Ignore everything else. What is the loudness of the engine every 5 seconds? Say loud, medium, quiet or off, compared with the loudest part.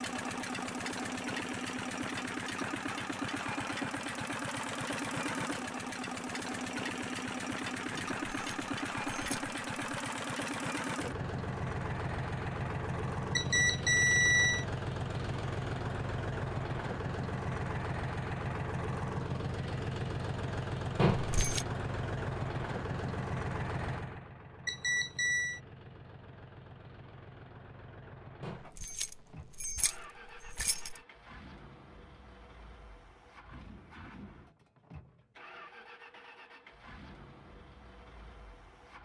loud, loud, loud, loud, loud, quiet, quiet, quiet.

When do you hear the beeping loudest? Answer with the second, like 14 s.
14 s.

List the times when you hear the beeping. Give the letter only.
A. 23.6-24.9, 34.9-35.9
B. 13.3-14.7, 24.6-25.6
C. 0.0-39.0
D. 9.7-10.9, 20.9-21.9
B.